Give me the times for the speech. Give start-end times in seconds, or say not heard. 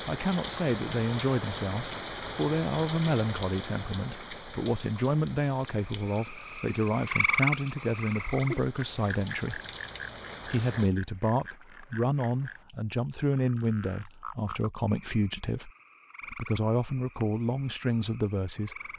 0.1-9.6, 10.4-15.7, 16.3-18.8.